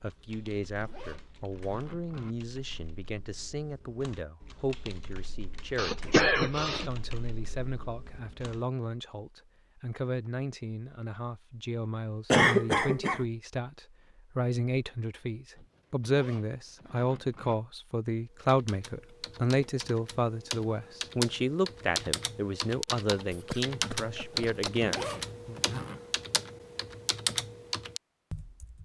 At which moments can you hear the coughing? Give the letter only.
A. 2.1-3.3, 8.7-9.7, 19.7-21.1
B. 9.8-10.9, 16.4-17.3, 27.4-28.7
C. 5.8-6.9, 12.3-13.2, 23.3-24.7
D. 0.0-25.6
C.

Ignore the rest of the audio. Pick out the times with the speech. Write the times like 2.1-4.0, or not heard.
0.0-25.6.